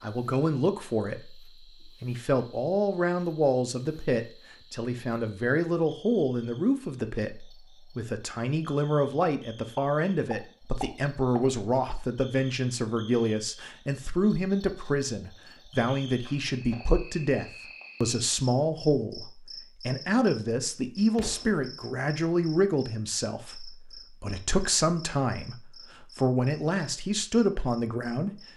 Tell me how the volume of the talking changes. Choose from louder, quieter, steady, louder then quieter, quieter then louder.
steady.